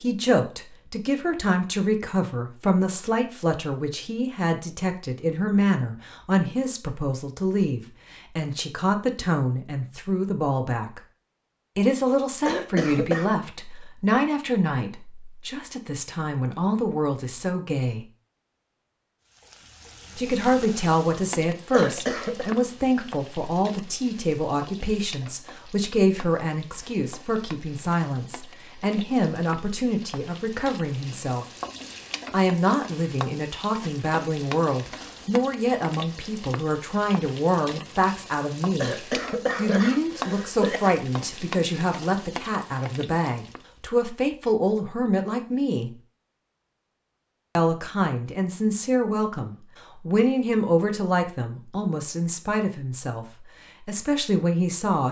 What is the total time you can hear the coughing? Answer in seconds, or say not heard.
4 s.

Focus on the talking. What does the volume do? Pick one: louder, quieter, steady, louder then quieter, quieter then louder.
steady.